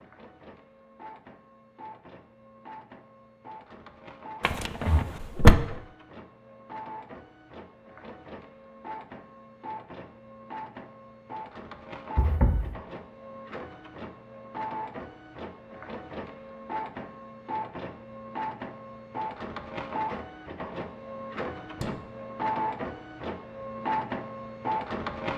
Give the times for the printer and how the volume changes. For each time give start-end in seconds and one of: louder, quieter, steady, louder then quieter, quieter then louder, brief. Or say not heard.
0.0-25.3 louder.